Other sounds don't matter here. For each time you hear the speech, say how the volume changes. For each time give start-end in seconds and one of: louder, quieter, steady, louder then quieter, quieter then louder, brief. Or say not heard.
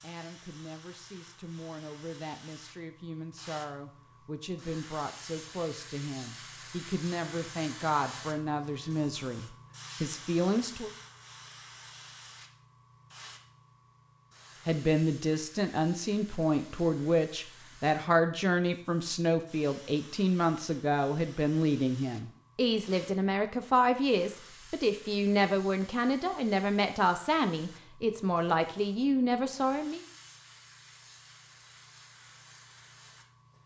0.0-10.9 louder
14.7-30.0 steady.